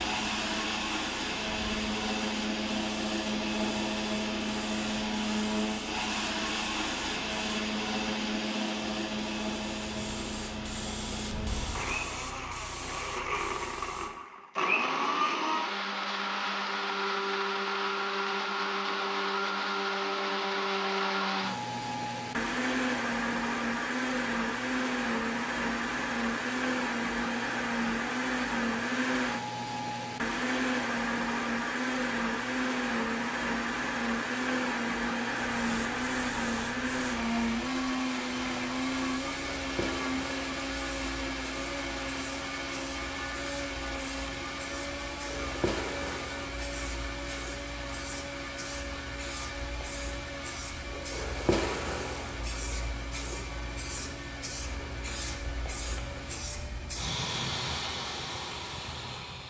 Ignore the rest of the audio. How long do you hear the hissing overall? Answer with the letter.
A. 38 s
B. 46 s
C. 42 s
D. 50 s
A.